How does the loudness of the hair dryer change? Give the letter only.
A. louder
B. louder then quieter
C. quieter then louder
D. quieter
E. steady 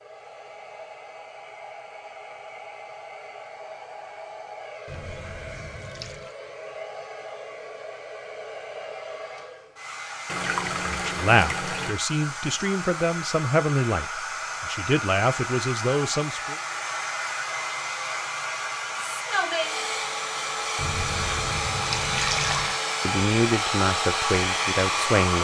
A.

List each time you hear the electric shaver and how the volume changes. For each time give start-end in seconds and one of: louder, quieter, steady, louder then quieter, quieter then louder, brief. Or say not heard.
not heard.